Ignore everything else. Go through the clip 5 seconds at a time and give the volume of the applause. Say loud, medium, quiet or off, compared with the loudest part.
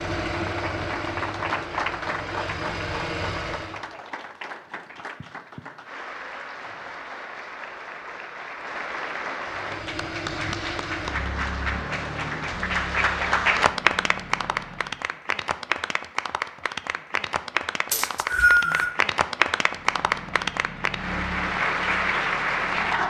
medium, medium, loud, loud, loud.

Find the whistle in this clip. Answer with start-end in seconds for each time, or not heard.
17.9-18.9.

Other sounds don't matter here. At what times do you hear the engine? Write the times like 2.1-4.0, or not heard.
0.0-3.9, 9.4-15.0, 19.6-23.0.